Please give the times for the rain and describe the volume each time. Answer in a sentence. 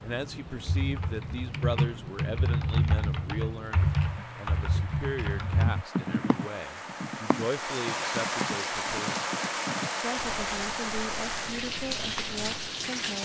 The rain can be heard from 0.0 to 13.2 s, getting louder.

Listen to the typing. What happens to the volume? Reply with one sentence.
The loudness of the typing goes down.